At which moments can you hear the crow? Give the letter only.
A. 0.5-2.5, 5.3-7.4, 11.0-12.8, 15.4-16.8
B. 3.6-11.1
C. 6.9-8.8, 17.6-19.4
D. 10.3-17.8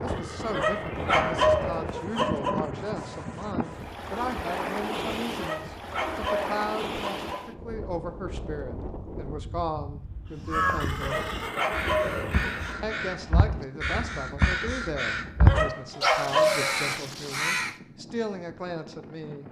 D.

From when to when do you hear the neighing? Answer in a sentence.
The neighing can be heard from 0.1 to 2.0 s and from 10.8 to 12.6 s.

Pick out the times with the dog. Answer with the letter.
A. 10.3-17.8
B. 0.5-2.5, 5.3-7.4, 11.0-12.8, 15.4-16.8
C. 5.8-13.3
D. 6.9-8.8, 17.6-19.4
B.